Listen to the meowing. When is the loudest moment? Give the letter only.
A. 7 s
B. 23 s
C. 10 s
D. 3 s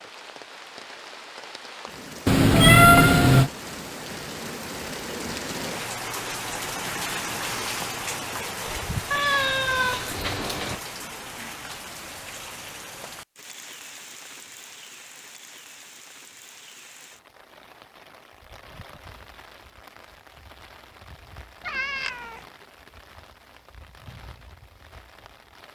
D.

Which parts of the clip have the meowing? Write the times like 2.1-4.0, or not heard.
2.2-3.5, 9.1-10.8, 21.6-22.4.